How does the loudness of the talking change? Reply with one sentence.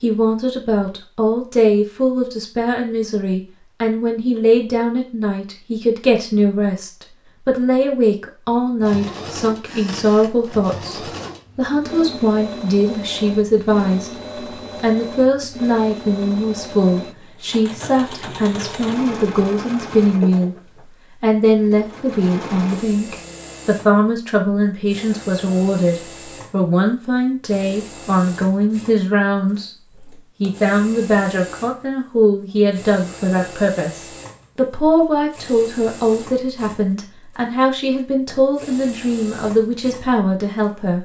The volume of the talking stays about the same.